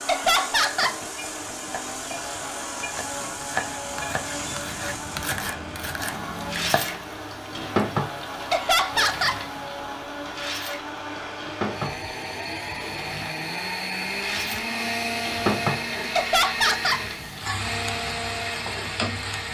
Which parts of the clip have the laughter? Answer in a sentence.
The laughter can be heard from 0.1 to 1.0 s, from 8.5 to 9.4 s and from 16.1 to 17.1 s.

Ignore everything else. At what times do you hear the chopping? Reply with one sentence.
You can hear the chopping from 0.6 to 7.1 s.